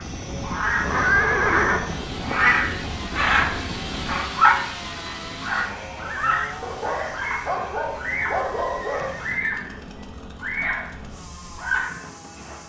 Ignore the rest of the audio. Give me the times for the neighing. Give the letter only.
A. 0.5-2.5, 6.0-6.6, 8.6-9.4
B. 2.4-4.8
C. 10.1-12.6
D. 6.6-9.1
A.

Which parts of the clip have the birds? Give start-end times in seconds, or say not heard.
0.0-4.6, 5.4-9.7, 10.4-10.9, 11.6-12.0.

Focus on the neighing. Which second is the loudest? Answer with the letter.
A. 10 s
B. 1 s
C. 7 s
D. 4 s
B.